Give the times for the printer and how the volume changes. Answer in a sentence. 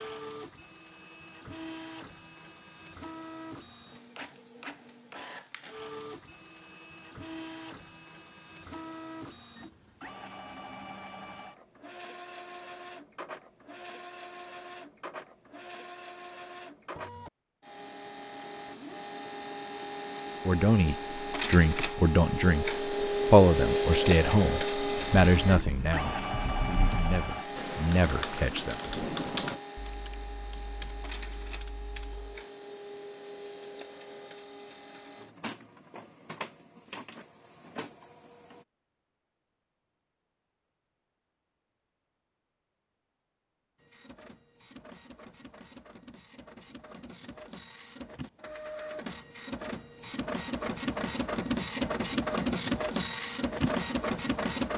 You can hear the printer from 0.0 to 38.6 s, getting louder then quieter; and from 43.8 to 54.7 s, getting louder.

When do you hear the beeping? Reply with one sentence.
You can't hear the beeping here.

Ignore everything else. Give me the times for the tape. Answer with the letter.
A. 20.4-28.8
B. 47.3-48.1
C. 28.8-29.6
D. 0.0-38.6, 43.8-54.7
C.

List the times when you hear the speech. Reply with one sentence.
The speech can be heard from 20.4 to 28.8 s.